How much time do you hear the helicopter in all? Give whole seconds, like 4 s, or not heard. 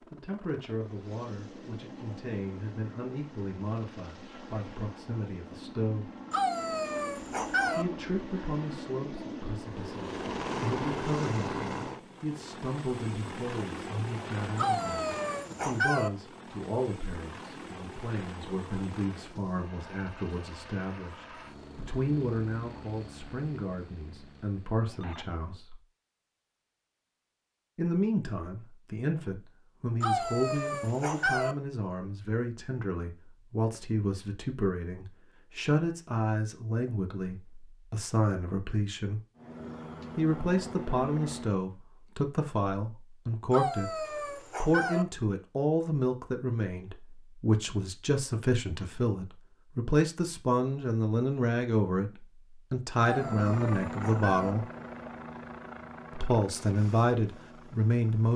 33 s.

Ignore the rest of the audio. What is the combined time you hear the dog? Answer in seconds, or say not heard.
8 s.